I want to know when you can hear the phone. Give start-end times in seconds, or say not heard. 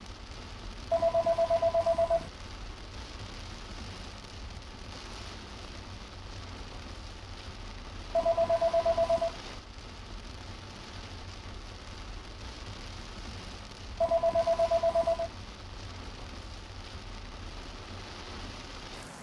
0.9-2.3, 8.2-9.3, 14.0-15.3.